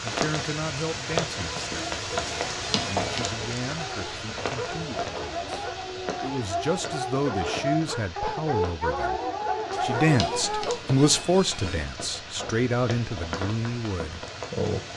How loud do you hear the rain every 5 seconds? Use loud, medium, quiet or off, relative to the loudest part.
loud, medium, medium.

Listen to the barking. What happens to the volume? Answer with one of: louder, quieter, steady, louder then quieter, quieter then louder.
louder.